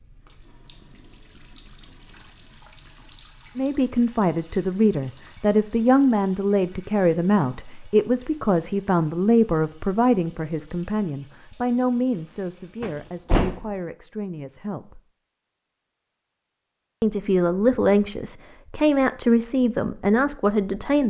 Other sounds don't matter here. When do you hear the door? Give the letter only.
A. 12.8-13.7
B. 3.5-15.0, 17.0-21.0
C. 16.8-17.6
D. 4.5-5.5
A.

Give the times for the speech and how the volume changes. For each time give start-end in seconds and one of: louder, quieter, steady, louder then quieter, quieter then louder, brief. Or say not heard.
3.5-15.0 quieter
17.0-21.0 quieter then louder.